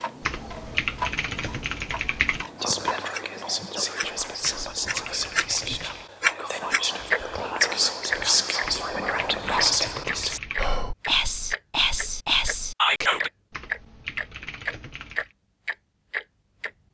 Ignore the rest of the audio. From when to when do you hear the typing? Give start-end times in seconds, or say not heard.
0.2-2.5, 4.4-6.0, 8.6-10.7, 13.5-15.3.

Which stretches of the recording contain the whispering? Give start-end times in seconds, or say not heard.
2.6-13.3.